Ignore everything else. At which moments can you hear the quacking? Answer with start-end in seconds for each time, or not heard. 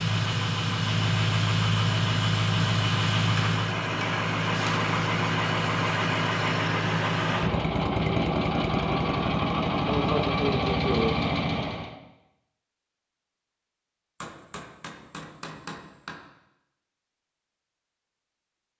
not heard.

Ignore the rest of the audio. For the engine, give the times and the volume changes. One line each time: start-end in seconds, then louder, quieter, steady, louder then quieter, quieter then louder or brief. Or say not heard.
0.0-11.9 steady.